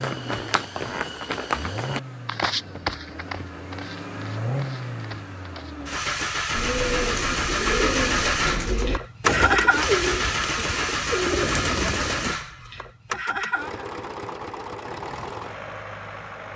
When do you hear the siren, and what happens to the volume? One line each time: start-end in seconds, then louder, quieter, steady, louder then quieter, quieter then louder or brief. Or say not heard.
not heard.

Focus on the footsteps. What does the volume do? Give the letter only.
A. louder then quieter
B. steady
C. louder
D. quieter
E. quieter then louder
D.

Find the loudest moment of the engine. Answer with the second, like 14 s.
10 s.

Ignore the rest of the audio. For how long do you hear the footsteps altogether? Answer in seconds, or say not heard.
6 s.